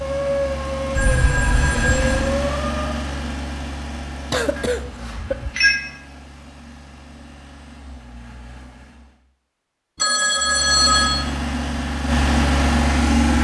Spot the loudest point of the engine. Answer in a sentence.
The loudest moment of the engine is at 13 seconds.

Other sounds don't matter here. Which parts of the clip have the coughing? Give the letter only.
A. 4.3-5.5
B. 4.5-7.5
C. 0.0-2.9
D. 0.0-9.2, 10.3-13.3
A.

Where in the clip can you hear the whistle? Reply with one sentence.
You can't hear the whistle here.